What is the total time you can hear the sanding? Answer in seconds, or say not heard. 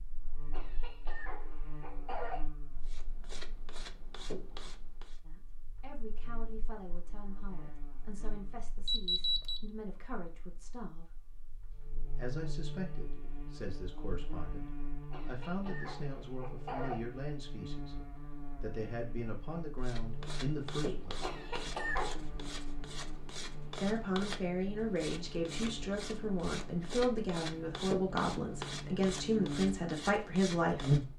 14 s.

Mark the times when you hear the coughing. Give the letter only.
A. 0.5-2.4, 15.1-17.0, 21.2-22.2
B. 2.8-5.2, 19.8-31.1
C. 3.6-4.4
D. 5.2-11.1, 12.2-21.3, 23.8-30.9
A.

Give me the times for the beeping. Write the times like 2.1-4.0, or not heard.
8.8-9.6.